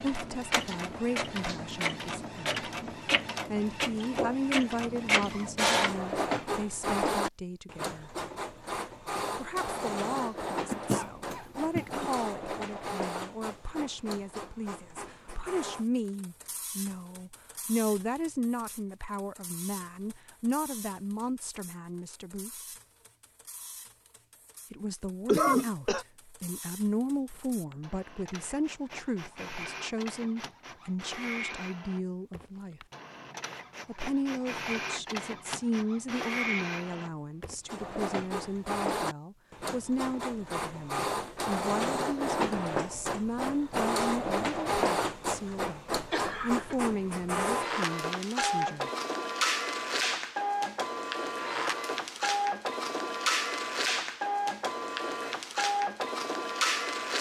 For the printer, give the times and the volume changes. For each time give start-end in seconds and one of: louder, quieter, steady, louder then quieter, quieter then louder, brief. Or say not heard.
0.0-57.1 quieter then louder.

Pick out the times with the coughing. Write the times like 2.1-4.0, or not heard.
10.7-12.1, 25.2-26.1, 46.1-46.8.